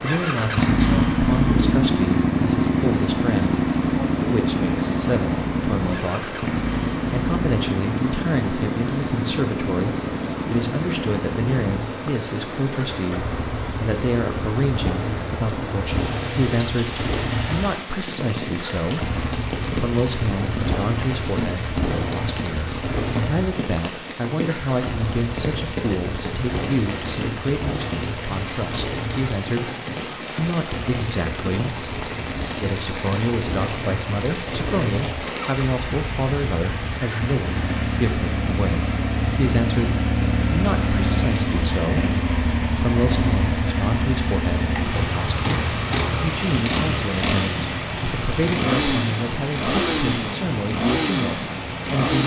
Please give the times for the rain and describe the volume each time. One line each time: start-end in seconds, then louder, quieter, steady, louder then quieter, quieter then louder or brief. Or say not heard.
0.0-52.2 steady.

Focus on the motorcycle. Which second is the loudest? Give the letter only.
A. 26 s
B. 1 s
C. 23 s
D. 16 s
B.